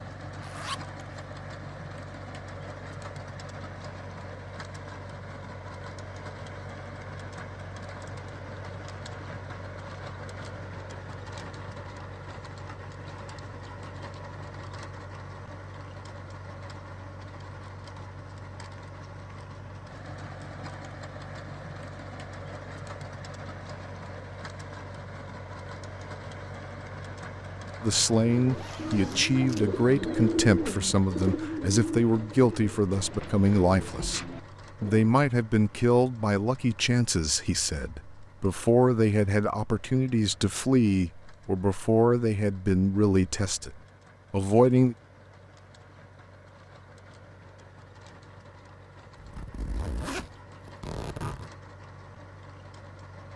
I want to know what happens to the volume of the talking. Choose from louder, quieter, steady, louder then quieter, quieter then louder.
steady.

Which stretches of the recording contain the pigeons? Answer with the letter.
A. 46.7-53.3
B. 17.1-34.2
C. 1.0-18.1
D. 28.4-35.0
D.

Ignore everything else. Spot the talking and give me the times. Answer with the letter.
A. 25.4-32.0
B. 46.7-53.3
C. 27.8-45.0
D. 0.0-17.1
C.